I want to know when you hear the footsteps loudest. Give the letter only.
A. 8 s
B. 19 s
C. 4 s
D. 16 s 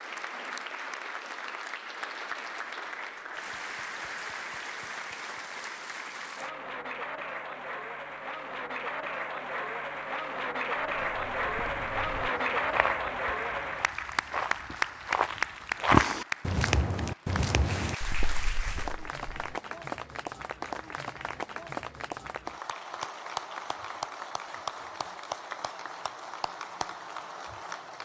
D.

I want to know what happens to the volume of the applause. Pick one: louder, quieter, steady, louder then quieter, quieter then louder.
louder then quieter.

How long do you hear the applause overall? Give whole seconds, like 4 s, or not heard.
28 s.